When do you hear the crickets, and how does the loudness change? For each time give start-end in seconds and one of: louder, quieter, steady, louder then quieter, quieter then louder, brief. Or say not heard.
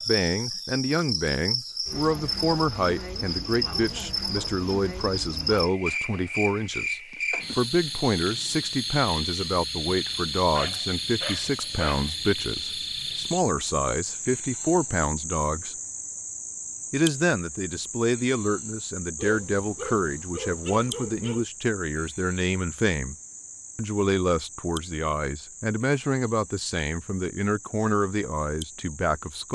0.0-29.5 quieter.